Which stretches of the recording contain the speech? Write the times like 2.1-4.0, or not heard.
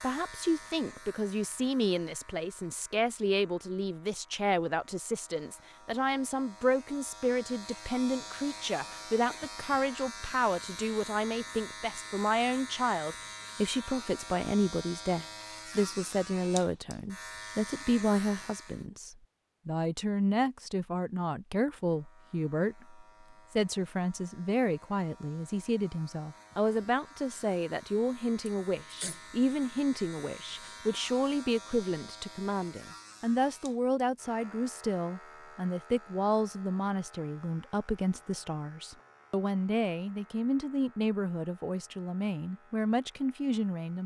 0.0-44.0.